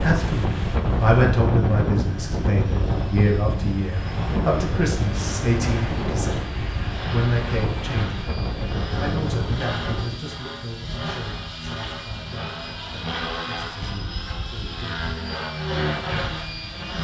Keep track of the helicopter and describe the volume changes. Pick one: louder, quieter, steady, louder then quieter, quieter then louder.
louder.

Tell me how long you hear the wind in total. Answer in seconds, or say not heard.
10 s.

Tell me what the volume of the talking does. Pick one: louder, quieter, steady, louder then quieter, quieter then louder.
quieter.